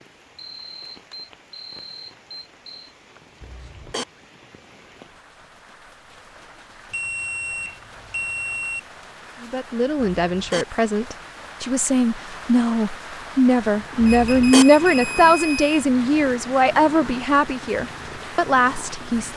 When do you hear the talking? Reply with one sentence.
The talking can be heard from 9.4 to 19.3 s.